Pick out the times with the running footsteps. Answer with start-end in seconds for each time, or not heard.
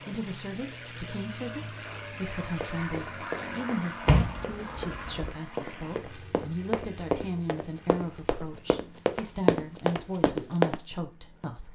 2.6-10.8.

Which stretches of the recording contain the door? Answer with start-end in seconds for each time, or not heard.
4.0-5.3.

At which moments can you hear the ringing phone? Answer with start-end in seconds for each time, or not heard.
not heard.